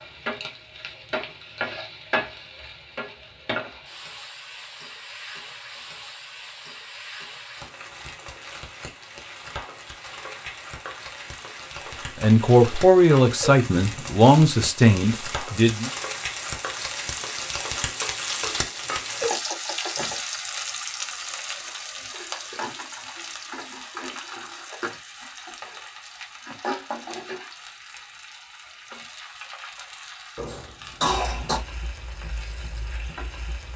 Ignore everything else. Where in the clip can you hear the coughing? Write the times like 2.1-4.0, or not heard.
30.4-31.6.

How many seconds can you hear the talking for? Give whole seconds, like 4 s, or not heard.
4 s.